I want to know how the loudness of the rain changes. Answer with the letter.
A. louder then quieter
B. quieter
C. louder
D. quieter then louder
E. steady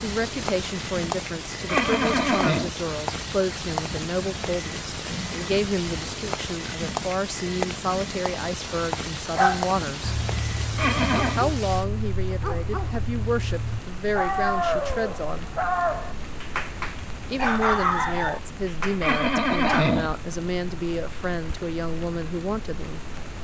B.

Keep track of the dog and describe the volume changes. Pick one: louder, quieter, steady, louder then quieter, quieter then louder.
louder.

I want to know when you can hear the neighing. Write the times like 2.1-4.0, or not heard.
1.6-2.7, 10.8-11.4, 19.0-20.1.